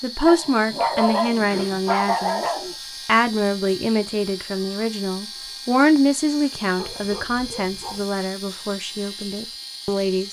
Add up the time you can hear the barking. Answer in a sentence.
The barking can be heard for 4 seconds in total.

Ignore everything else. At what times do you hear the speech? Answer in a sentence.
You can hear the speech from 0.0 to 2.5 s and from 3.0 to 10.2 s.